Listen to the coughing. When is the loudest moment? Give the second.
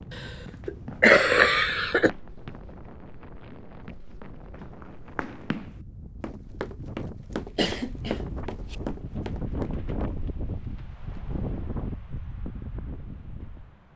1 s.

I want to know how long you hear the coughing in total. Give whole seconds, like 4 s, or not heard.
3 s.